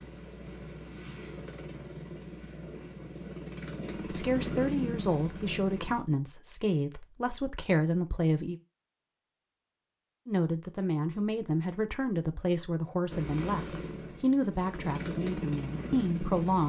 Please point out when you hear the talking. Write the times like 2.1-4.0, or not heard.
4.0-8.6, 10.2-16.6.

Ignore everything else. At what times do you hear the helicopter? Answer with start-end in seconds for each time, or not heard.
0.0-6.0, 13.1-16.6.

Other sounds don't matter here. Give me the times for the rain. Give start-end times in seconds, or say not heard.
not heard.